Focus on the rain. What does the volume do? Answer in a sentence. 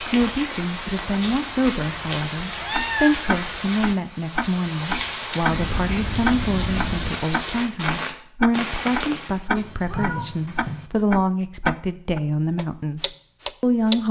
The loudness of the rain stays about the same.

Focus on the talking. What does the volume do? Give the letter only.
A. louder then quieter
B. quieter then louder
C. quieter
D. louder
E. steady
E.